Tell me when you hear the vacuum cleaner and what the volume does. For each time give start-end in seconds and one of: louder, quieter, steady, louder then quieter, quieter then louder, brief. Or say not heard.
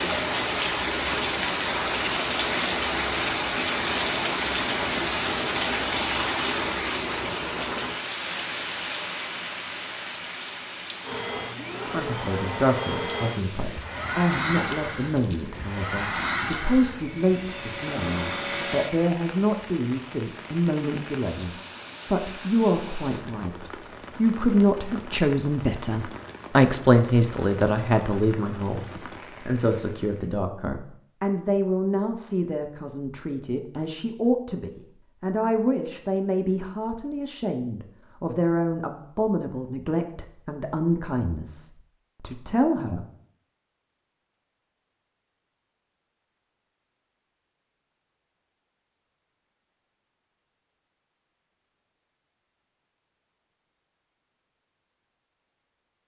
11.0-19.1 steady.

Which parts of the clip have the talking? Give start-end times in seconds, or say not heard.
11.8-43.0.